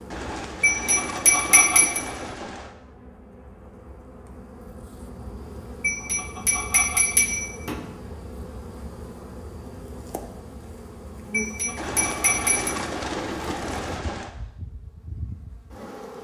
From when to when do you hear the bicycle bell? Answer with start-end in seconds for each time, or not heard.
0.6-2.0, 5.8-7.8, 11.3-12.8.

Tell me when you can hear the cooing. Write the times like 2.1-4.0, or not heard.
0.1-2.8, 11.8-14.3.